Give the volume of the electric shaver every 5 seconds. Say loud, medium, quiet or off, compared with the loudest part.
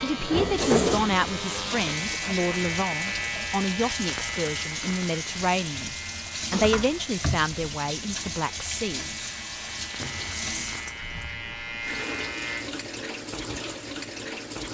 loud, medium, loud.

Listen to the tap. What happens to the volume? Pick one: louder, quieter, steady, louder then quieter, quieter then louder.
steady.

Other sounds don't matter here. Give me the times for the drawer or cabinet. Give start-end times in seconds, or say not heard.
0.3-1.1, 6.5-7.5, 9.8-10.4.